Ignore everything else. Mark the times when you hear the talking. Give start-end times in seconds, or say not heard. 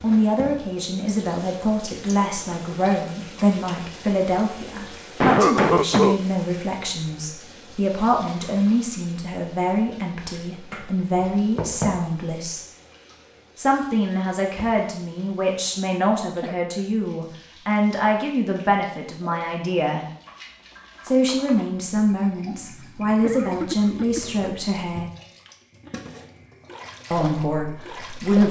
0.0-12.7, 13.6-20.1, 21.1-25.1, 27.1-28.4.